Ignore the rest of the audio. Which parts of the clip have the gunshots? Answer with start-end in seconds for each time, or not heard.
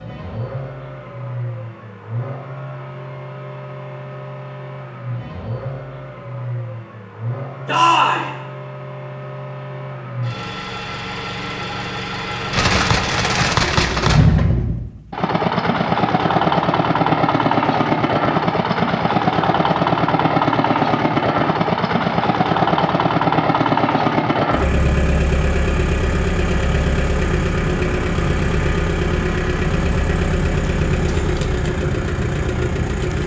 12.5-14.3.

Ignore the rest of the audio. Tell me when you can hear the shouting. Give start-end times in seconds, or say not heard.
7.7-8.3.